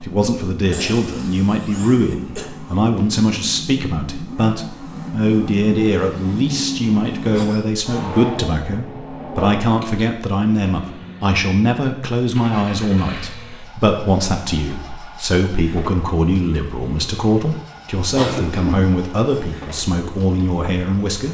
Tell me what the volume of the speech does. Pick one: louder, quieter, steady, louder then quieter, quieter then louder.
steady.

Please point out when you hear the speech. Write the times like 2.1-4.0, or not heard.
0.0-21.3.